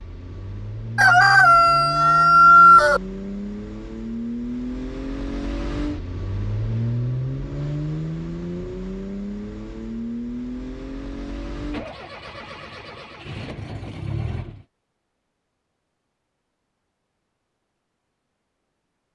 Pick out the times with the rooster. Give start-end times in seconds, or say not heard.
0.9-3.0.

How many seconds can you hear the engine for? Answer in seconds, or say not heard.
15 s.